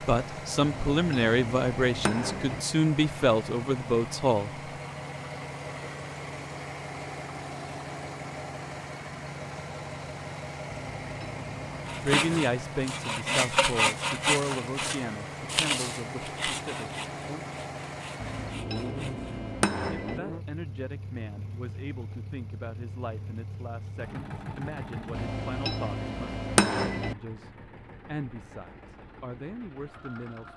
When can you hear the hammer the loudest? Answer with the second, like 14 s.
27 s.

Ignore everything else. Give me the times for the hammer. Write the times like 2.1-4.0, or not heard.
0.6-2.6, 10.7-12.5, 18.1-20.2, 25.1-27.1.